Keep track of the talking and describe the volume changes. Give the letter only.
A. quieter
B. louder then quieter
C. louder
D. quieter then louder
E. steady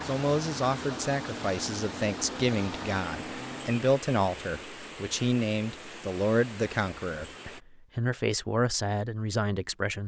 E.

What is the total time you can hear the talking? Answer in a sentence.
The talking can be heard for 10 seconds in total.